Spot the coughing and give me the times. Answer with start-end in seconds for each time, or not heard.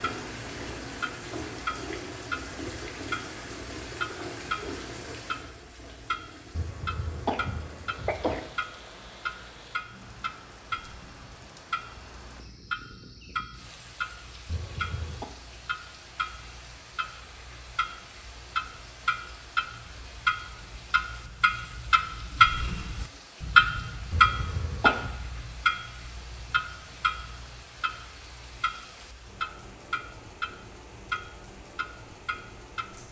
6.5-8.4, 14.4-15.3, 24.1-25.1.